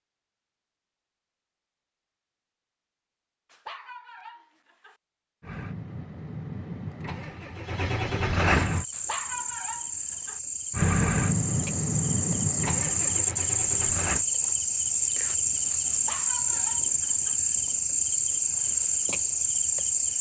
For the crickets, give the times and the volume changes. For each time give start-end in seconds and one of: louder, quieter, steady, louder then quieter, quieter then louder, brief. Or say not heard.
8.6-20.1 louder.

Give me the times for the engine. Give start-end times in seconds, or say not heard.
5.4-8.8, 10.7-14.2.